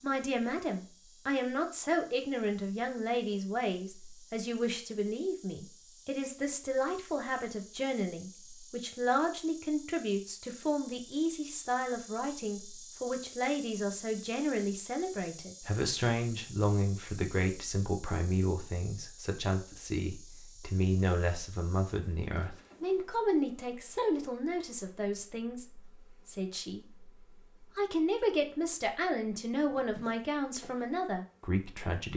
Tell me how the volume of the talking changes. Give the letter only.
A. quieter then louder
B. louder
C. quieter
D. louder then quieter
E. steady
E.